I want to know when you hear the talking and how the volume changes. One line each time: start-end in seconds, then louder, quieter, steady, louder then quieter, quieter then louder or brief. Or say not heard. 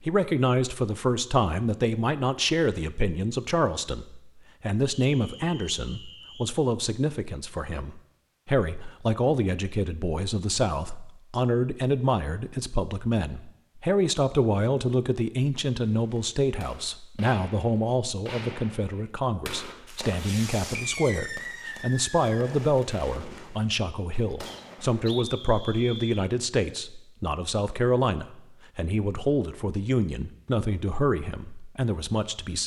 0.0-32.6 steady.